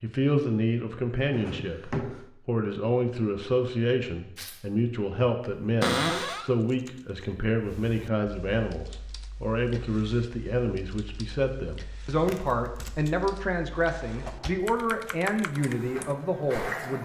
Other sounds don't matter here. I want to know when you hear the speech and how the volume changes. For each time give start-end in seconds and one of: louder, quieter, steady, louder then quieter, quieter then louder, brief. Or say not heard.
0.0-17.0 steady.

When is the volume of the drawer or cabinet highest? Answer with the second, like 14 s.
6 s.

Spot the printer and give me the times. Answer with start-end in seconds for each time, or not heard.
15.5-17.0.